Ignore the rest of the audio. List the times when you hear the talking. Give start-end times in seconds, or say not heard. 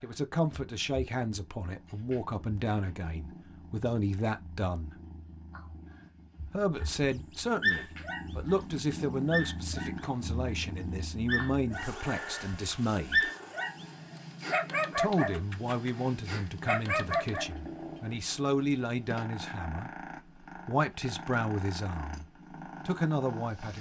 0.0-5.0, 6.5-13.3, 14.9-23.7.